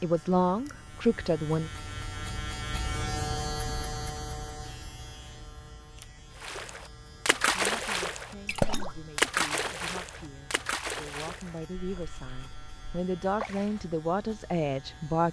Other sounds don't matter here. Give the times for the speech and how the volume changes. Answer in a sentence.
The speech can be heard briefly from 0.0 to 1.7 s; and from 7.5 to 15.2 s, getting louder.